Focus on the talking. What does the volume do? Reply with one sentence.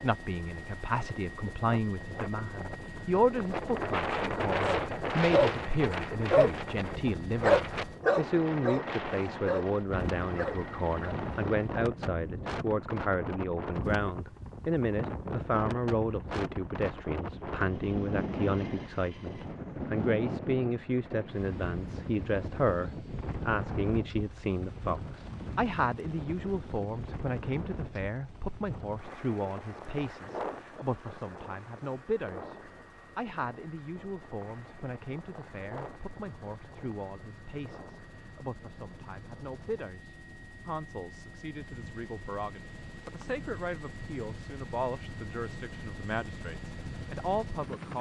The volume of the talking goes down.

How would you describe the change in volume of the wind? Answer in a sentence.
The loudness of the wind goes down.